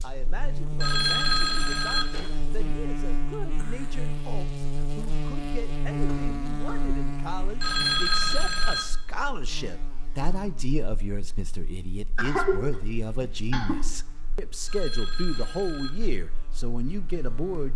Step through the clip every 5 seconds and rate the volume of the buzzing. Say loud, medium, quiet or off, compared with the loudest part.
loud, loud, quiet, quiet.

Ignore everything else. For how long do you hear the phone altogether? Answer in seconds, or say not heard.
4 s.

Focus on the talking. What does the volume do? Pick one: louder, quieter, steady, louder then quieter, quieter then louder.
louder.